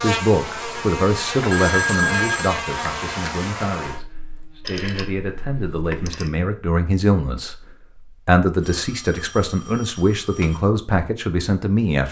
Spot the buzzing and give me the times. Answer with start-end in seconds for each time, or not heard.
0.0-6.2.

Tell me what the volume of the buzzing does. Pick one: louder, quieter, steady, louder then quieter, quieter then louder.
quieter.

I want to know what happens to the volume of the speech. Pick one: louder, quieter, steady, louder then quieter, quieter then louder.
quieter then louder.